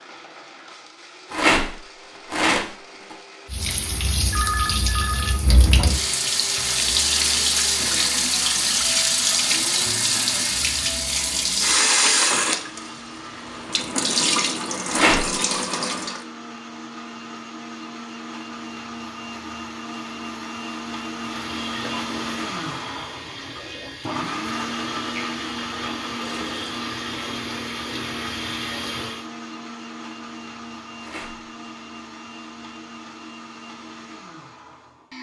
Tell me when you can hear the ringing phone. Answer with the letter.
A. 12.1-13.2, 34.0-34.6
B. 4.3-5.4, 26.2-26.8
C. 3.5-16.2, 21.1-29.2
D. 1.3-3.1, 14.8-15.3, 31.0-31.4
B.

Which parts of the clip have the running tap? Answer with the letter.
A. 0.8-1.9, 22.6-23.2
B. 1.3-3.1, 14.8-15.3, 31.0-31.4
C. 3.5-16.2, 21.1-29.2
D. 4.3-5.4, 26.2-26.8
C.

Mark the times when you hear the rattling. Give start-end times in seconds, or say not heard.
1.3-3.1, 14.8-15.3, 31.0-31.4.